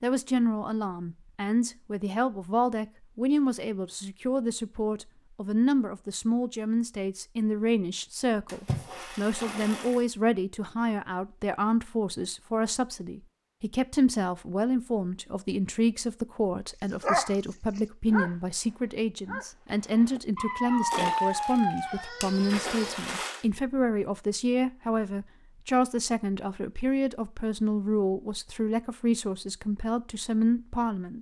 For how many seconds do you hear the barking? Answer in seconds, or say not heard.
6 s.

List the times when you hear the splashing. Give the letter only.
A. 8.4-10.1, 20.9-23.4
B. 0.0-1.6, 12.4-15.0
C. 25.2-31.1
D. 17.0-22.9
A.